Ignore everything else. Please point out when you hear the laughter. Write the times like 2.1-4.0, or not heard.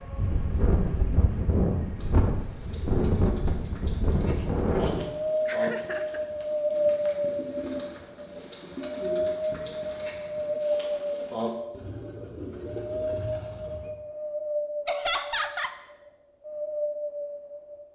5.5-6.2, 14.8-15.8.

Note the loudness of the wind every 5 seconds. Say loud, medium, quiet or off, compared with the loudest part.
loud, loud, loud, medium.